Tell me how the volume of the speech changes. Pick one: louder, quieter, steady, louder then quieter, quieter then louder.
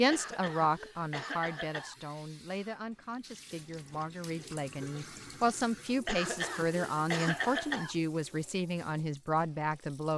quieter then louder.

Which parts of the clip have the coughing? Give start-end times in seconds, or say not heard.
0.1-2.0, 6.0-8.0.